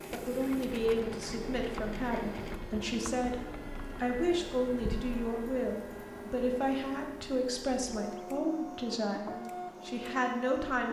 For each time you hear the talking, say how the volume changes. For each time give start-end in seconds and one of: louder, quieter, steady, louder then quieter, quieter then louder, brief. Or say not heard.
0.1-10.8 steady.